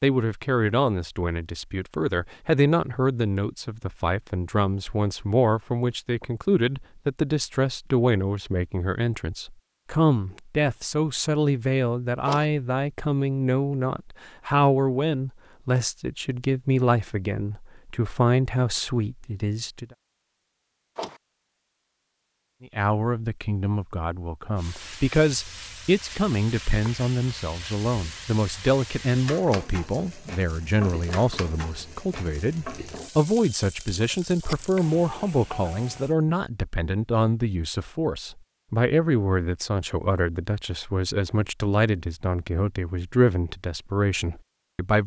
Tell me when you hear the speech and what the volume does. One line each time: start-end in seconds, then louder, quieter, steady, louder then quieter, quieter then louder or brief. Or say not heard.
0.0-19.9 steady
22.6-45.0 steady.